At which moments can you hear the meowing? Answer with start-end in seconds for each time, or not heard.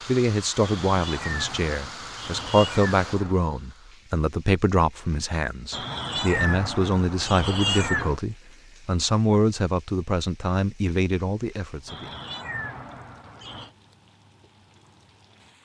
0.6-3.4, 5.7-8.2, 11.8-13.7.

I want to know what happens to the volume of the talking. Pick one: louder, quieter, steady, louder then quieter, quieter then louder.
steady.